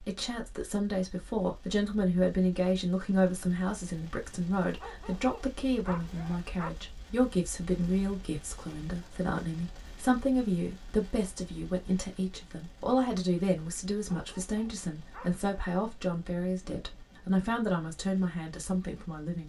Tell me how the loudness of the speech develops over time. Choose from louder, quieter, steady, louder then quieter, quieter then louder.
steady.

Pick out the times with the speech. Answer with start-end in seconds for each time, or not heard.
0.0-19.4.